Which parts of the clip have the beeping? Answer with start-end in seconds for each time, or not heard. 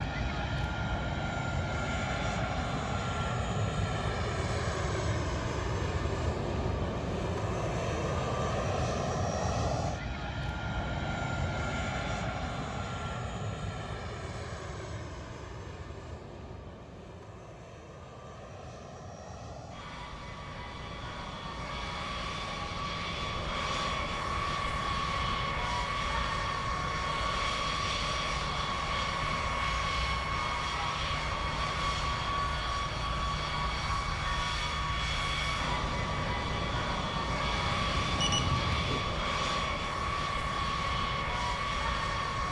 37.7-39.0.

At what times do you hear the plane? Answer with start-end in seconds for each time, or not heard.
0.0-42.4.